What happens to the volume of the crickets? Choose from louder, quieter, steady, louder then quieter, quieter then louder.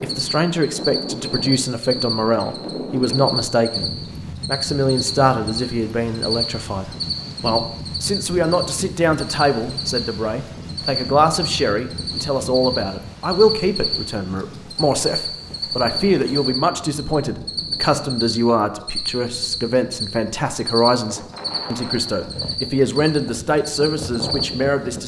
steady.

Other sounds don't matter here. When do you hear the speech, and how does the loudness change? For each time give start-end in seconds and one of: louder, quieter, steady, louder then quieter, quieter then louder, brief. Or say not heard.
0.0-25.0 steady.